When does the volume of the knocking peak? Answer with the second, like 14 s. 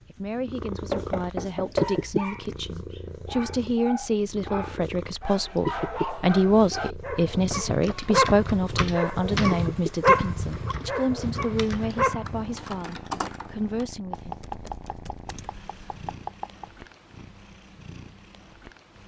2 s.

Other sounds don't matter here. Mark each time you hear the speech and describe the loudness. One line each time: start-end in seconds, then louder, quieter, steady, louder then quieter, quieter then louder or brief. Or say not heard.
0.1-14.7 louder then quieter.